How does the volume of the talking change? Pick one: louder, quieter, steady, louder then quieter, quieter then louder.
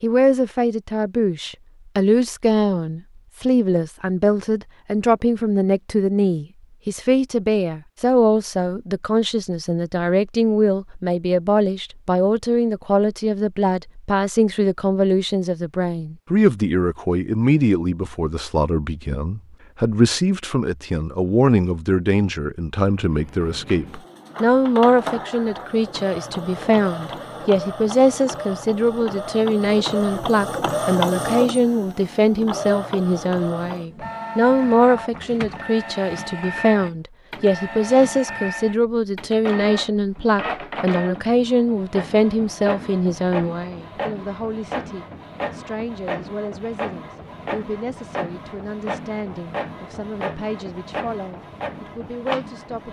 quieter.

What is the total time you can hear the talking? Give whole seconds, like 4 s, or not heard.
53 s.